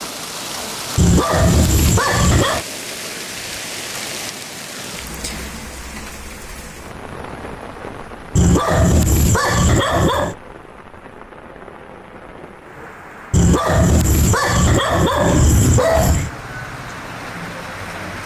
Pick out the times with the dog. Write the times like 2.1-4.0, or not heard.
0.9-2.6, 8.3-10.3, 13.3-16.3.